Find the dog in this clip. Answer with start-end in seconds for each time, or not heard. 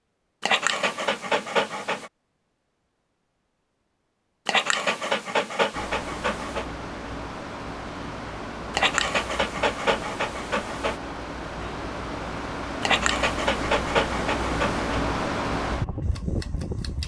0.4-2.1, 4.5-6.7, 8.8-10.9, 12.8-14.9.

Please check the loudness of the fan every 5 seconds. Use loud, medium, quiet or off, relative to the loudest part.
off, medium, loud, loud.